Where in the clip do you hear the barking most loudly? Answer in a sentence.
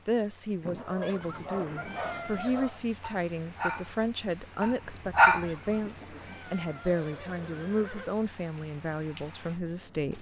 The volume of the barking peaks at 5 seconds.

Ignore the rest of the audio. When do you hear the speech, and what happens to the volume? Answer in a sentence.
You can hear the speech from 0.1 to 10.1 s, at a steady volume.